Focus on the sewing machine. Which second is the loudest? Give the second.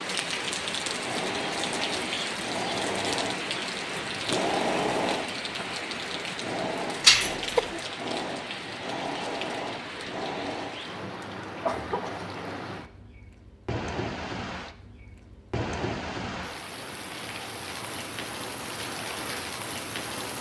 5 s.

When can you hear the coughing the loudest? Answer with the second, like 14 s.
7 s.